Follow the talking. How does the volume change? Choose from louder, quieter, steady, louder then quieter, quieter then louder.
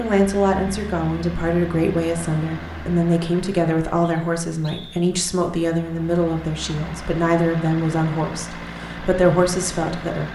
steady.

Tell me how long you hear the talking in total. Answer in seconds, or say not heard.
10 s.